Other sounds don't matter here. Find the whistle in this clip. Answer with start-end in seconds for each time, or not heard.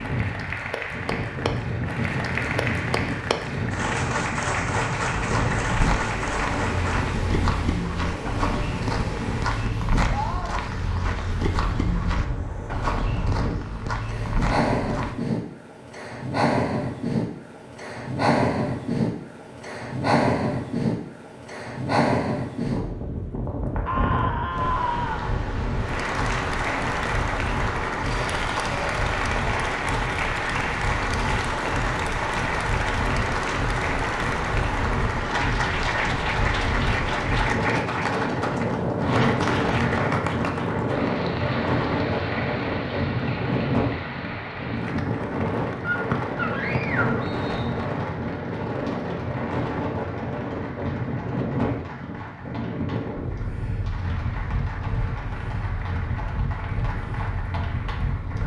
46.1-47.8.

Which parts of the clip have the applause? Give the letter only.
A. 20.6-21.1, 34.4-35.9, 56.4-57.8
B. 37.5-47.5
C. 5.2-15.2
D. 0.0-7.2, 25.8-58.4
D.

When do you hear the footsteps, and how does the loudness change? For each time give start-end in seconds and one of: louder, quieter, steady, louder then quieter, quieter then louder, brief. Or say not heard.
5.2-15.2 steady.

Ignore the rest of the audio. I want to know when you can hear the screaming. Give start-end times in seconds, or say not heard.
10.1-10.6, 23.9-25.4, 45.8-47.2.